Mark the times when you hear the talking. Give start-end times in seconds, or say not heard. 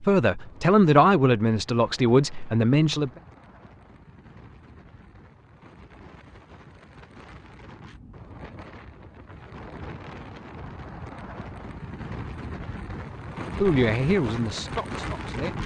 0.0-3.1, 13.6-15.6.